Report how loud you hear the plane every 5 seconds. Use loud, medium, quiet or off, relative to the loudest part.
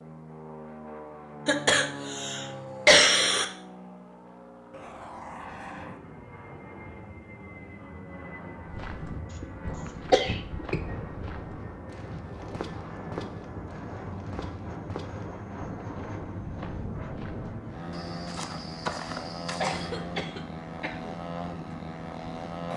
medium, medium, loud, loud, loud.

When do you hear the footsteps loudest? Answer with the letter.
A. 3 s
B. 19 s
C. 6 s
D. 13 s
B.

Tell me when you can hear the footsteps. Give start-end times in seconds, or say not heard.
8.7-19.9.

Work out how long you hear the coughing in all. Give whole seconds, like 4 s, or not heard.
4 s.